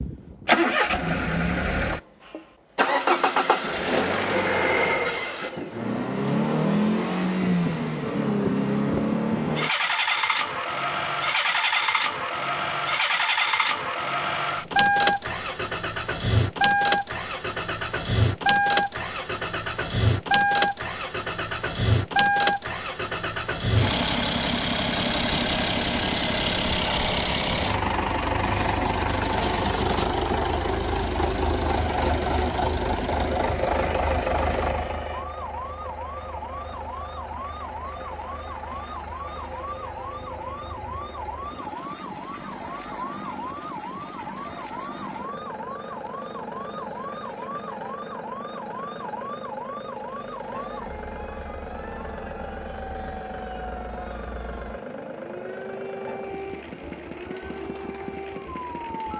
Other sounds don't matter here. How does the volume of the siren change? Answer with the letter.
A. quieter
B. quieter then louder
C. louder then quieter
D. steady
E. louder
D.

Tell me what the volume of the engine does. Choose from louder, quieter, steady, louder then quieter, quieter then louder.
quieter.